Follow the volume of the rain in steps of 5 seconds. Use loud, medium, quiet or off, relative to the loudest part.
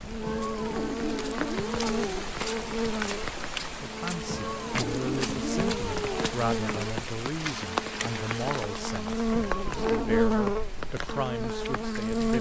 loud, loud, medium.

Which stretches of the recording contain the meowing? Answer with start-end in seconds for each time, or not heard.
0.2-2.2, 4.2-6.3, 9.3-10.2.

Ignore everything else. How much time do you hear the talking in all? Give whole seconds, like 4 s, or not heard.
9 s.